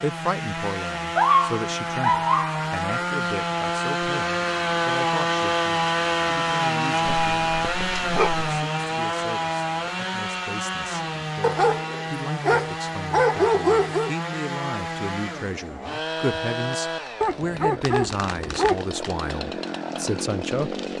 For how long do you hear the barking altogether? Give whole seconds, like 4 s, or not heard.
7 s.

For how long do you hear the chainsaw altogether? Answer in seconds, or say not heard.
21 s.